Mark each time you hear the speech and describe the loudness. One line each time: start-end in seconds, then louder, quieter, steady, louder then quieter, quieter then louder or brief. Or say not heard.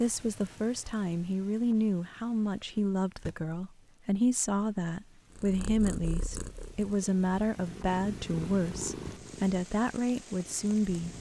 0.0-11.1 steady.